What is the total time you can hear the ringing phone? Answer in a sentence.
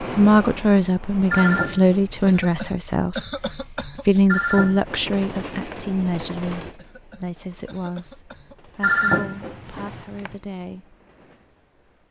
You can hear the ringing phone for 4 seconds altogether.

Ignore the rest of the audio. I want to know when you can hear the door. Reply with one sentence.
You can't hear the door here.